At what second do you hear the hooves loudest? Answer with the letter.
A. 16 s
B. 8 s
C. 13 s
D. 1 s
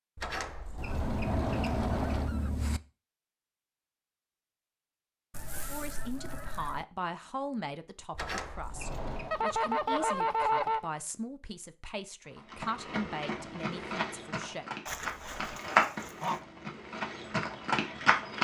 A.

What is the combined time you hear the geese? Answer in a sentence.
You can hear the geese for 7 seconds altogether.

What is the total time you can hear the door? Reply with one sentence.
You can hear the door for 4 seconds altogether.